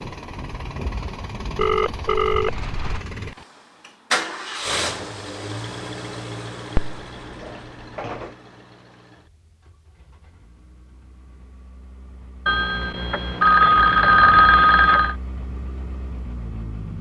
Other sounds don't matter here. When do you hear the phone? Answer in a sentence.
You can hear the phone from 1.6 to 3.0 s, from 6.8 to 8.3 s and from 12.4 to 15.2 s.